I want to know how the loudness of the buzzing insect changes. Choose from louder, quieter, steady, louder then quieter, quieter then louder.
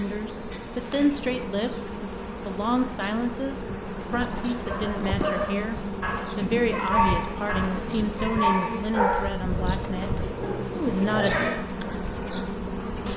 steady.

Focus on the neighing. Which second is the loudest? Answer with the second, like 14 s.
11 s.